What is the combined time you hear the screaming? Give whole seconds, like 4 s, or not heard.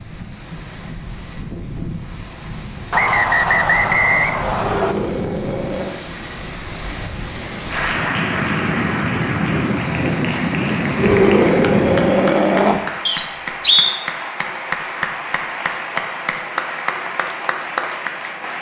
3 s.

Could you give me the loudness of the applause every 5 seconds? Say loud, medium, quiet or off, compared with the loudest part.
off, loud, loud, loud.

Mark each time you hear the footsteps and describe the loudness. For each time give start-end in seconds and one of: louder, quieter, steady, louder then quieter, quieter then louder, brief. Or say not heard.
not heard.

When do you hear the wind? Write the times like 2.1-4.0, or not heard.
0.0-12.3.